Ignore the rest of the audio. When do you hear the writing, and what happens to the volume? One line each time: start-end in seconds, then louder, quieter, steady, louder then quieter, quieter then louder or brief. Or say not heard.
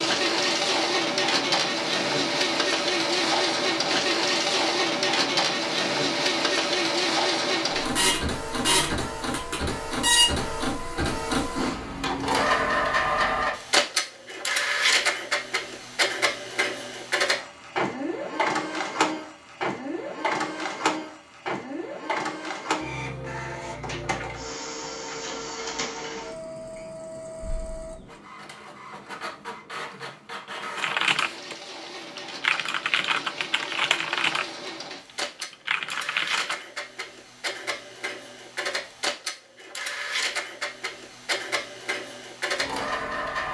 not heard.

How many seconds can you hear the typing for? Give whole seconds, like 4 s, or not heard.
6 s.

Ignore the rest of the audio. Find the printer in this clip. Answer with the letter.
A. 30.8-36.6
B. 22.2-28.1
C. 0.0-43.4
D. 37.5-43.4
C.